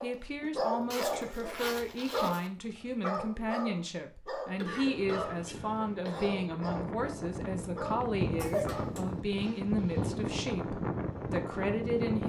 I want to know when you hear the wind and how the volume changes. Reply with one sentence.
The wind can be heard from 4.8 to 12.2 s, getting louder.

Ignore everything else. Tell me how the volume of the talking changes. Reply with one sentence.
The volume of the talking stays about the same.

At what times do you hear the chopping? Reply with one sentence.
The chopping can't be heard in this clip.